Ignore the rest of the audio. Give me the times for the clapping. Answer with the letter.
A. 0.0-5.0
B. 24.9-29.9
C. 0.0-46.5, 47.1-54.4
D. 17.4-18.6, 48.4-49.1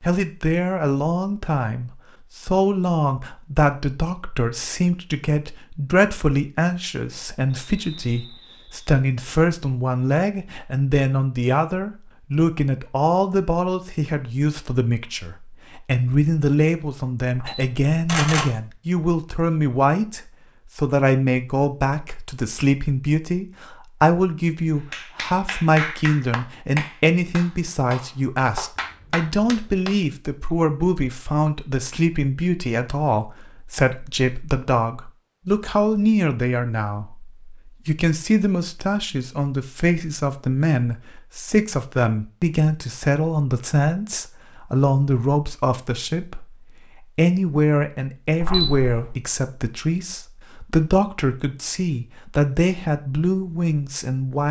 B.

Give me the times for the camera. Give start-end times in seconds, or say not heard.
17.4-18.6, 48.4-49.1.